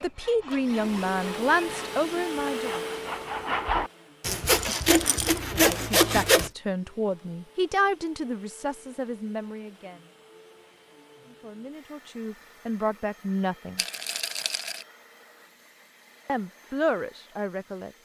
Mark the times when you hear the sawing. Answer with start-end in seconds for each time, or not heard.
0.0-6.5.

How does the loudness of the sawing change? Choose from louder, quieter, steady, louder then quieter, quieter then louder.
louder.